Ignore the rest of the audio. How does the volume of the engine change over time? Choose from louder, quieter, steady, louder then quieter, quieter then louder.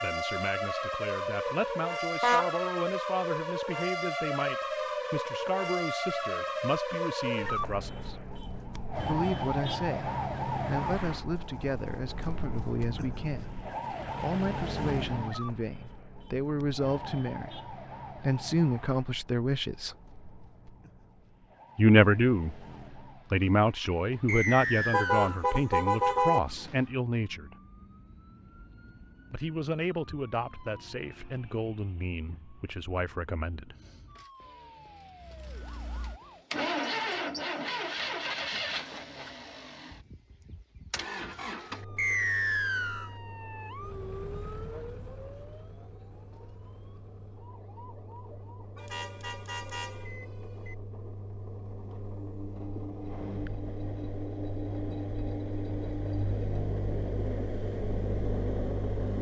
quieter then louder.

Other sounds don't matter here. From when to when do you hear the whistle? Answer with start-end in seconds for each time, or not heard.
24.2-25.4, 42.0-43.1.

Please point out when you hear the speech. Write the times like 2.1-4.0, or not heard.
0.0-8.2, 9.0-19.9, 21.8-22.6, 23.3-27.6, 29.3-33.8.